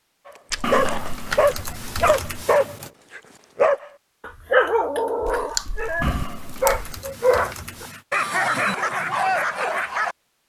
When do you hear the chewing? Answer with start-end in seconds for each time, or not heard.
0.5-2.4, 5.2-6.9.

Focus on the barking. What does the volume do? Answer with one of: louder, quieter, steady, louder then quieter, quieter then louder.
steady.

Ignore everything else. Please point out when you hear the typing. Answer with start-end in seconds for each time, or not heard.
0.6-2.9, 6.0-8.1.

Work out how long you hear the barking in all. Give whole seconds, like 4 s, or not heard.
10 s.